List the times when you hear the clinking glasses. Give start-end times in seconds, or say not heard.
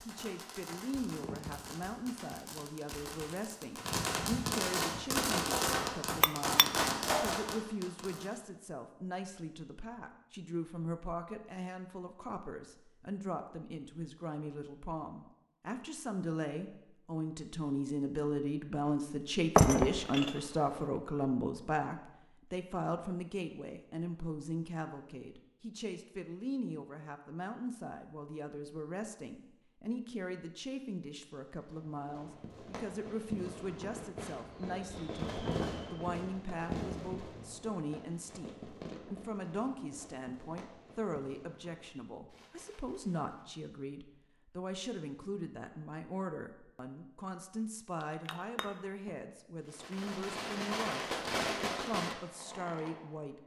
6.2-7.3, 19.6-20.8, 48.0-49.1.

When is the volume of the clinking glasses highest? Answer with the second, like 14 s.
20 s.